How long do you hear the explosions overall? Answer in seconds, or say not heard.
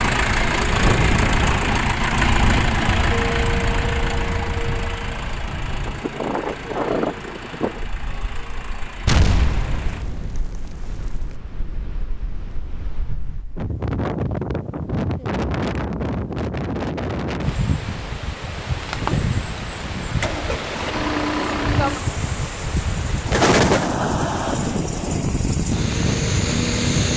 3 s.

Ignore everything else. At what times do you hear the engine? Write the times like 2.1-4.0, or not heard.
0.0-10.1, 18.9-27.1.